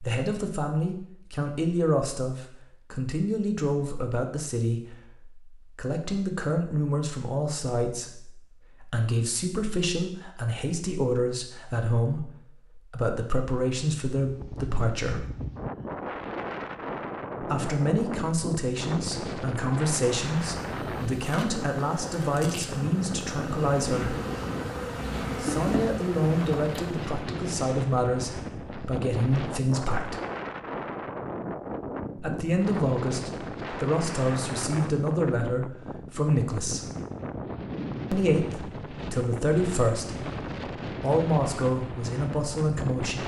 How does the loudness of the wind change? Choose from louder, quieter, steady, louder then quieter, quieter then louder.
steady.